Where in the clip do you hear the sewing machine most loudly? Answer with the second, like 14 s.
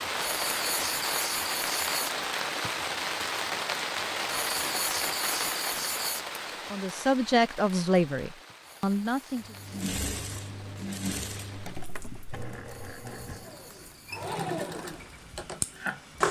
16 s.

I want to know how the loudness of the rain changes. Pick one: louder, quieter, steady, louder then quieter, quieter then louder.
quieter.